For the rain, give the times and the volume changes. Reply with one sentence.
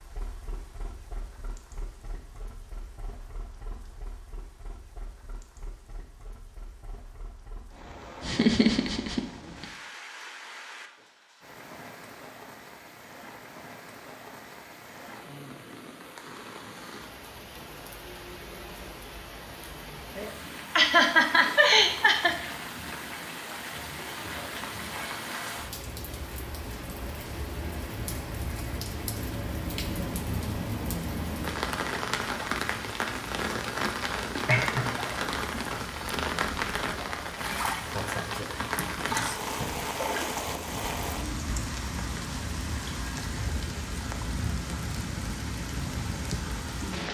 You can hear the rain from 0.0 to 47.1 s, getting louder.